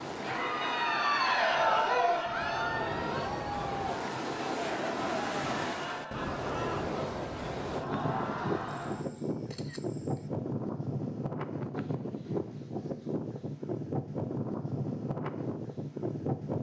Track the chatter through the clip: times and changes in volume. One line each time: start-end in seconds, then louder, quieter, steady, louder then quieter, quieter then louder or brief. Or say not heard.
0.1-9.1 quieter.